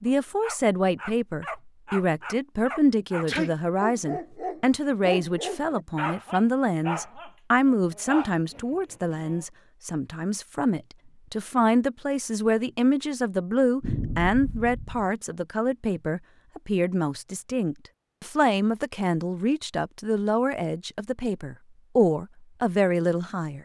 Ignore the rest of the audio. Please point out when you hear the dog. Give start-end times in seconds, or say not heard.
0.1-9.4.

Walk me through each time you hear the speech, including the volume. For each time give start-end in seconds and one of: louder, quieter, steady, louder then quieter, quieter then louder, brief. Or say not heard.
0.0-23.6 steady.